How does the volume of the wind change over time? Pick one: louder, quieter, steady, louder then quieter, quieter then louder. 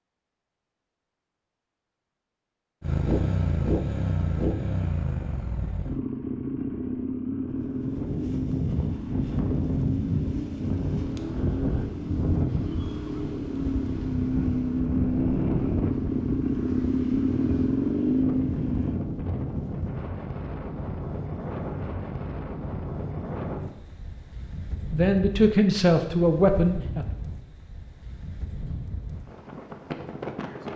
quieter.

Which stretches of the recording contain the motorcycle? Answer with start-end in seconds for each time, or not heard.
2.8-19.0.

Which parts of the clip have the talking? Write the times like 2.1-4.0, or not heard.
24.9-27.1.